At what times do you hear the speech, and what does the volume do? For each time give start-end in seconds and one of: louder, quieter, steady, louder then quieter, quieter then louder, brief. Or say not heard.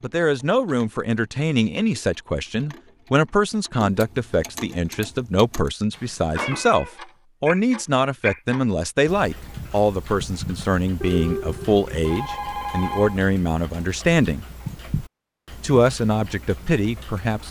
0.0-14.4 steady
15.6-17.4 brief.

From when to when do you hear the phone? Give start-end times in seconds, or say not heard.
11.0-13.3.